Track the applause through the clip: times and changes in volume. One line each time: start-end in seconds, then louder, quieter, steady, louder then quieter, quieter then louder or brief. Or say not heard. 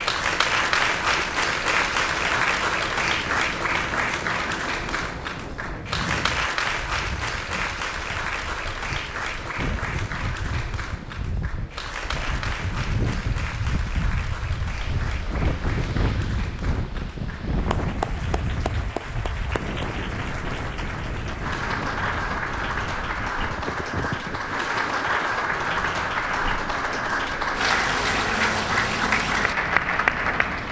0.0-30.6 quieter then louder.